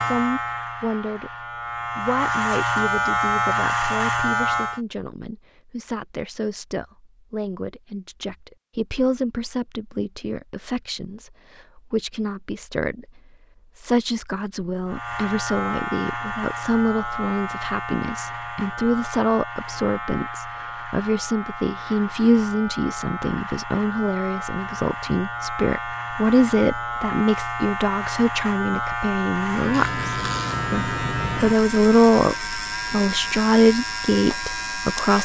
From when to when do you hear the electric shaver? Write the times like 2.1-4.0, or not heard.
0.0-4.8, 14.8-35.1.